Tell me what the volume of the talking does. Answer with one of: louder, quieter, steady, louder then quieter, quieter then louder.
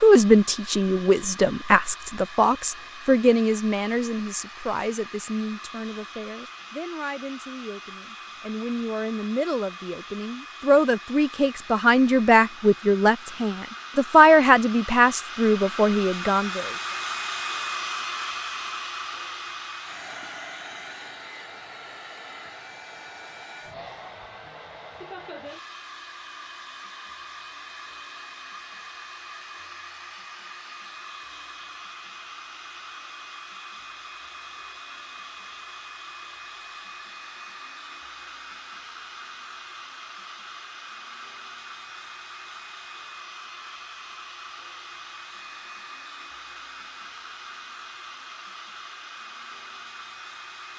quieter then louder.